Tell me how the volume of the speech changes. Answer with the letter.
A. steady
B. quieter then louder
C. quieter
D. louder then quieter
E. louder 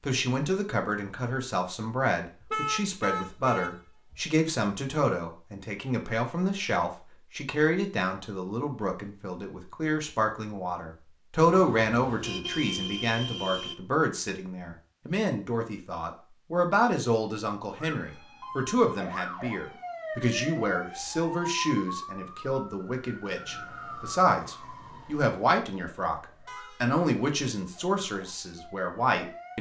A.